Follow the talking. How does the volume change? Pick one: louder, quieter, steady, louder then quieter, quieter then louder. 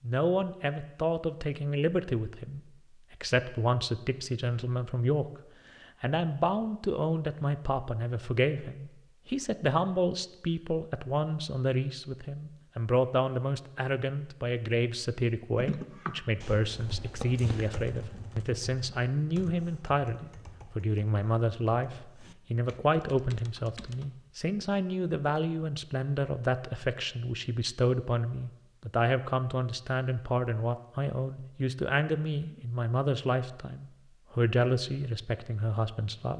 steady.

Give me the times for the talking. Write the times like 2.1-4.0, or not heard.
0.0-36.3.